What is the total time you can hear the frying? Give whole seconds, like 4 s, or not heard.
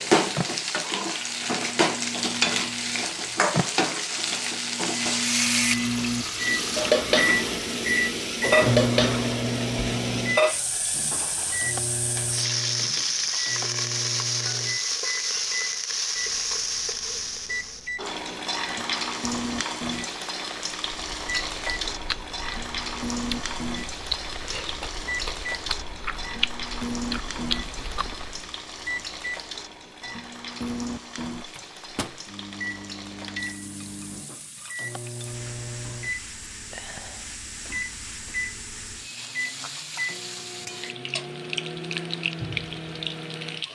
44 s.